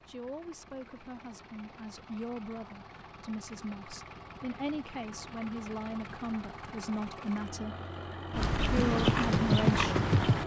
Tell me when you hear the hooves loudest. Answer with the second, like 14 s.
10 s.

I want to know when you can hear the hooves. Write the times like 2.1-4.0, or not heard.
8.3-10.4.